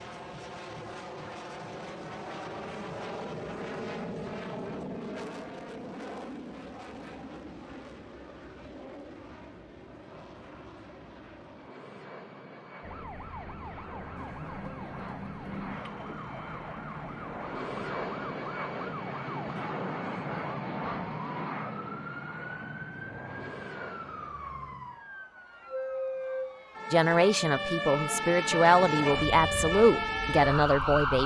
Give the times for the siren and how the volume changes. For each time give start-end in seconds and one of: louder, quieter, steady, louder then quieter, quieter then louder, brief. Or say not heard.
12.8-31.2 louder.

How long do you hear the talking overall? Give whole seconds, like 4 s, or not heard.
4 s.